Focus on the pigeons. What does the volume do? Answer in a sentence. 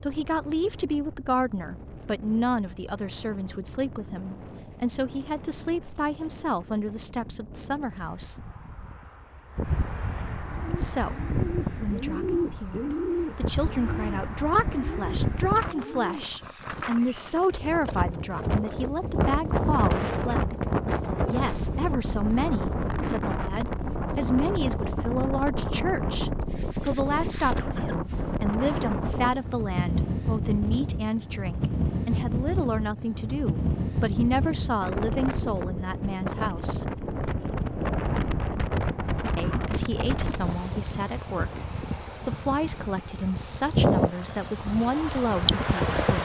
The loudness of the pigeons goes up, then down.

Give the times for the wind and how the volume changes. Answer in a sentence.
You can hear the wind from 0.0 to 46.2 s, getting louder.